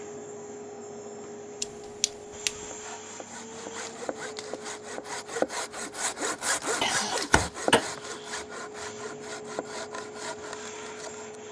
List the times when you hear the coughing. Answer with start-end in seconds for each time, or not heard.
1.6-2.6, 6.8-7.8.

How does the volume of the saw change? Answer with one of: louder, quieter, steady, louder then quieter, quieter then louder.
louder then quieter.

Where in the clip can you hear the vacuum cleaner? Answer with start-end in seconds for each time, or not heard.
0.0-11.4.